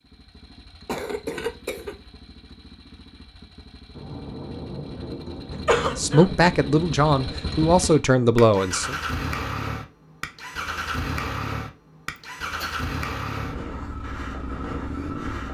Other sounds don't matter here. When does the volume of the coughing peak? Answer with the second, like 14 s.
6 s.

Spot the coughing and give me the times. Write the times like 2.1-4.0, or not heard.
0.8-1.9, 5.5-6.2, 12.2-12.8.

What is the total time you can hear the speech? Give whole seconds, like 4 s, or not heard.
3 s.